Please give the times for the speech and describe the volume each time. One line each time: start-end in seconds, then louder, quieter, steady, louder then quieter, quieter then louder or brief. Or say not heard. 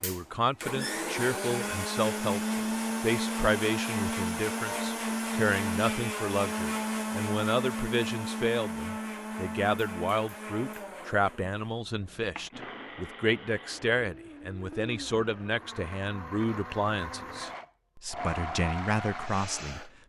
0.0-19.9 steady.